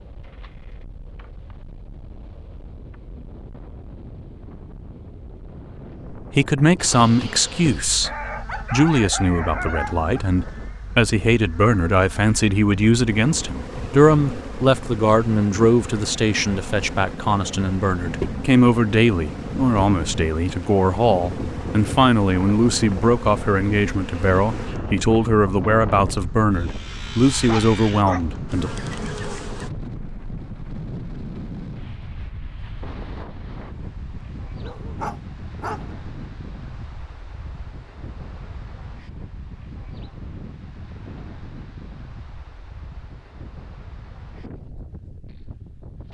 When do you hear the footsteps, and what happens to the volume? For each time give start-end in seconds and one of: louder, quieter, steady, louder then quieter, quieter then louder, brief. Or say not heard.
not heard.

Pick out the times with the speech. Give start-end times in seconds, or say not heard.
6.1-8.1, 8.7-28.7.